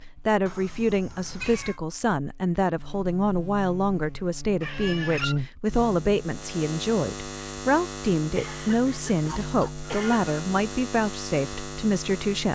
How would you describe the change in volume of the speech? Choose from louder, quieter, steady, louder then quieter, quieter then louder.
steady.